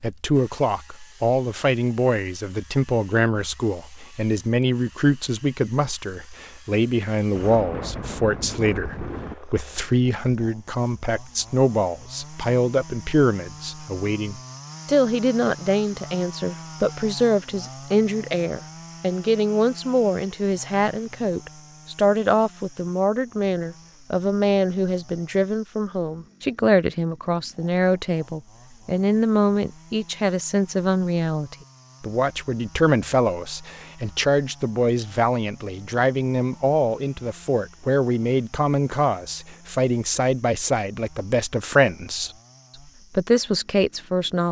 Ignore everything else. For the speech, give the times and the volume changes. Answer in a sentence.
The speech can be heard from 0.0 to 42.3 s, at a steady volume; and briefly from 43.1 to 44.4 s.